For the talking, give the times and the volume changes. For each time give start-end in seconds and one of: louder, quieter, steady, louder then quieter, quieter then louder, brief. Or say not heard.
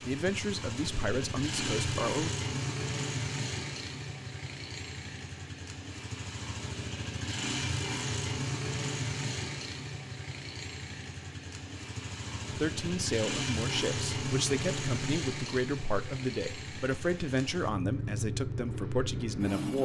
0.1-2.3 brief
12.6-19.7 steady.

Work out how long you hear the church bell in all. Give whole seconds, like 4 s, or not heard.
not heard.